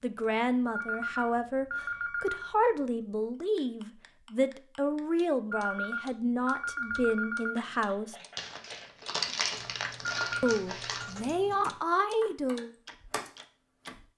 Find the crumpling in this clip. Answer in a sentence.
The crumpling can be heard from 8.3 to 11.2 s.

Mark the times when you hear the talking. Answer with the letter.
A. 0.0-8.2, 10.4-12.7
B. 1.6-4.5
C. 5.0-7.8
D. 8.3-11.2
A.